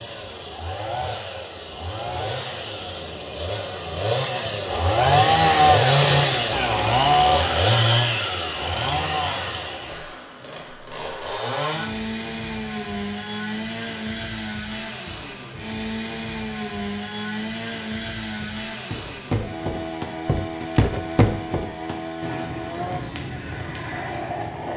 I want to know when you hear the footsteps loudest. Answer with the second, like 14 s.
21 s.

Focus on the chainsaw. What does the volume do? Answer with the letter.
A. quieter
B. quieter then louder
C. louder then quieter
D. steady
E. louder
C.